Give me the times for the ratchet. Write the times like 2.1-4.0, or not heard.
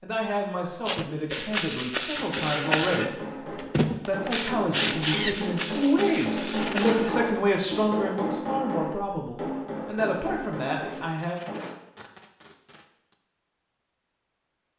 1.3-7.2.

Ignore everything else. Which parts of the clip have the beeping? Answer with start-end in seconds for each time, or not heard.
not heard.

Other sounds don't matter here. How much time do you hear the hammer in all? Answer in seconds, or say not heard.
10 s.